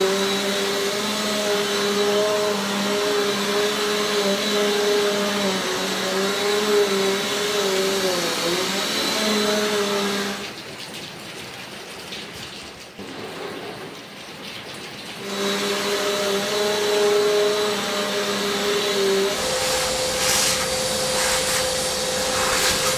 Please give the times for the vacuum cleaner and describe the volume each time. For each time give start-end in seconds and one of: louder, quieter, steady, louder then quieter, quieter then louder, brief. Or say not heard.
0.0-10.5 steady
15.2-22.9 steady.